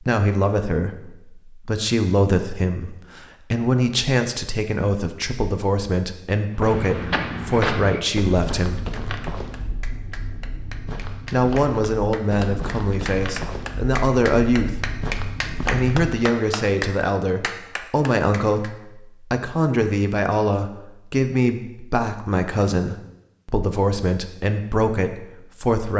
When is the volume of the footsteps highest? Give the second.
8 s.